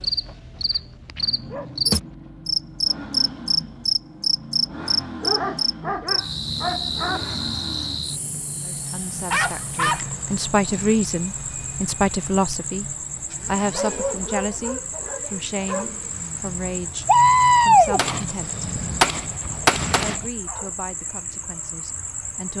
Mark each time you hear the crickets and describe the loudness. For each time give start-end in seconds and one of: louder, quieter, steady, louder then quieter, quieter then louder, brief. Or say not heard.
0.0-22.5 quieter.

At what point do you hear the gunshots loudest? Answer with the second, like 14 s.
18 s.